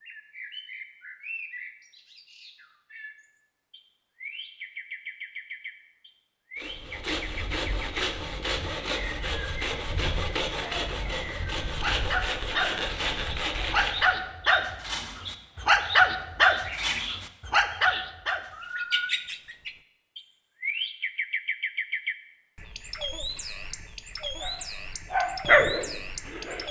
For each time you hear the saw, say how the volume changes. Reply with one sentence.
The saw can be heard from 6.5 to 14.2 s, at a steady volume.